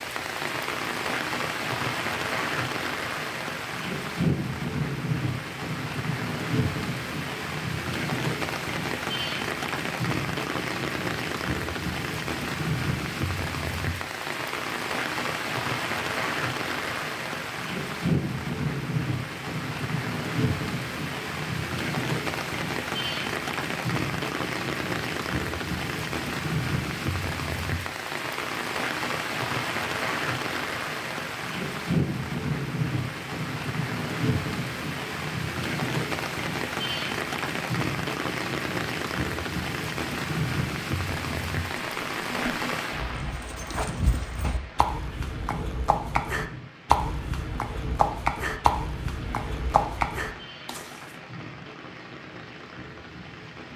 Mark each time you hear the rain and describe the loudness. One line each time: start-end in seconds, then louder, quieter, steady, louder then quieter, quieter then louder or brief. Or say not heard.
0.0-53.7 quieter.